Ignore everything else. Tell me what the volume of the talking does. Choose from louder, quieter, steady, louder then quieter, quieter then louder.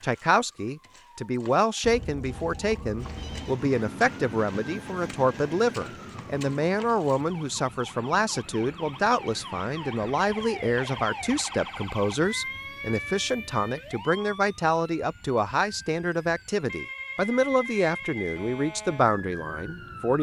steady.